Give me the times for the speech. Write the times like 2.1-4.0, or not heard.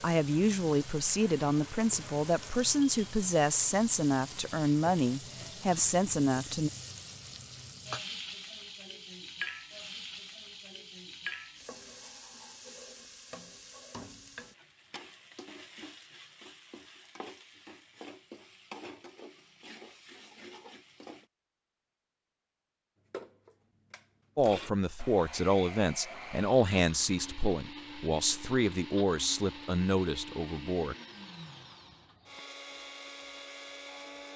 0.0-6.7, 24.4-30.9.